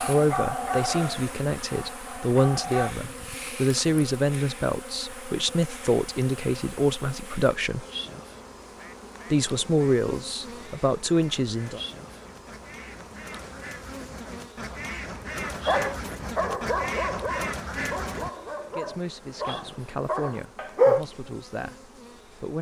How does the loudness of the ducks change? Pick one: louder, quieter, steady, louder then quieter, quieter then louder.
louder.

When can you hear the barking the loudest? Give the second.
21 s.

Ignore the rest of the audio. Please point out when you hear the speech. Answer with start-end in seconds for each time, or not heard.
0.0-7.8, 9.3-11.8, 18.7-22.5.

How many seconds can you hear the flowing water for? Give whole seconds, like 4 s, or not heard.
not heard.